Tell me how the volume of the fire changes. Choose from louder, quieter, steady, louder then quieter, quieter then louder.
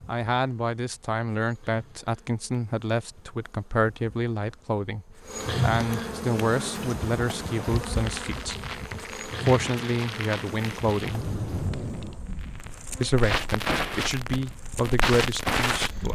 louder.